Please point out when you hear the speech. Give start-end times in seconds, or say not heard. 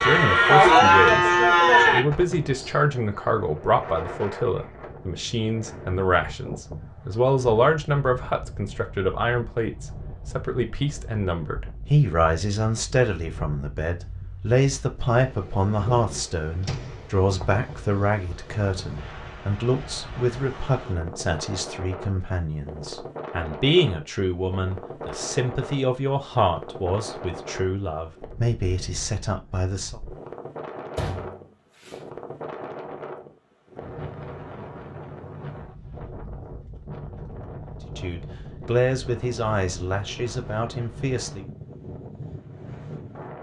0.0-1.3, 1.9-30.0, 38.0-41.5.